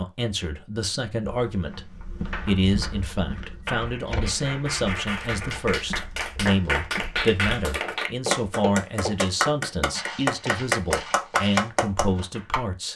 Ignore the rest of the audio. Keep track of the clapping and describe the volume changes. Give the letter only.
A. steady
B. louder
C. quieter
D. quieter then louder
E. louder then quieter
B.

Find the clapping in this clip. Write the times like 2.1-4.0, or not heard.
2.3-12.6.